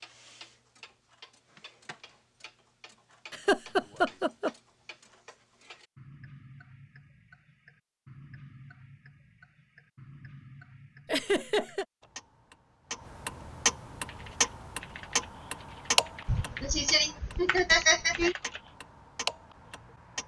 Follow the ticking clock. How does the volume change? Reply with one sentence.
The loudness of the ticking clock goes up.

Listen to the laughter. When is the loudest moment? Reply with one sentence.
The loudest moment of the laughter is at 18 seconds.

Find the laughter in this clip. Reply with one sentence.
You can hear the laughter from 3.3 to 4.5 s, from 11.1 to 11.8 s and from 16.2 to 18.4 s.